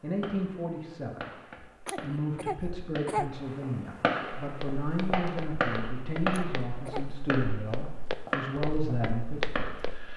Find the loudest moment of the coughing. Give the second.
3 s.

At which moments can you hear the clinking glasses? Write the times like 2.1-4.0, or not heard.
not heard.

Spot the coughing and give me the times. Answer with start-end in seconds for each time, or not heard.
1.9-3.3, 6.3-7.2.